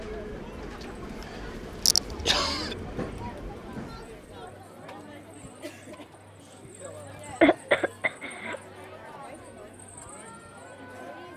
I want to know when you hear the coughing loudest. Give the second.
8 s.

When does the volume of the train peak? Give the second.
3 s.